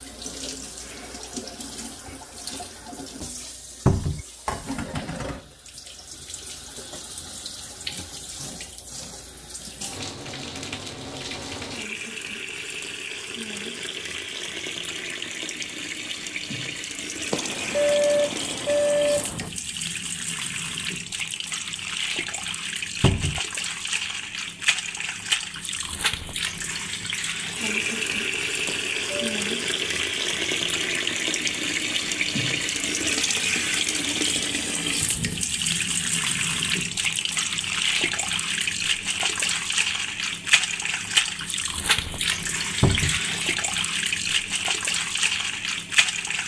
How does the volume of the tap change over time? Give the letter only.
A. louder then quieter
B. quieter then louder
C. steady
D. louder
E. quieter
D.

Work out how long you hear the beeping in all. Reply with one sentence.
The beeping can be heard for 3 seconds in total.